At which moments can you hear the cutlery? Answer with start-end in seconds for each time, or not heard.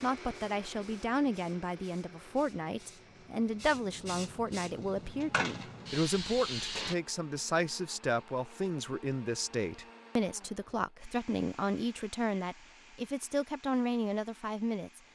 not heard.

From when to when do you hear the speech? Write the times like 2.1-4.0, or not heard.
0.0-15.0.